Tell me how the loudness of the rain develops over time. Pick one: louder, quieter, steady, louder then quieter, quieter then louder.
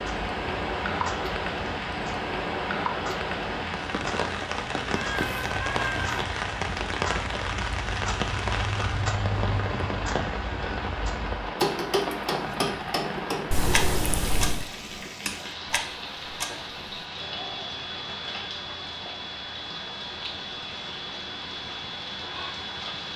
quieter.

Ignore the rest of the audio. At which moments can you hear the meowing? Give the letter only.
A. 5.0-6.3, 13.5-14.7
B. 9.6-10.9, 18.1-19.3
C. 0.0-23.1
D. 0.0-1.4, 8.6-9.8
A.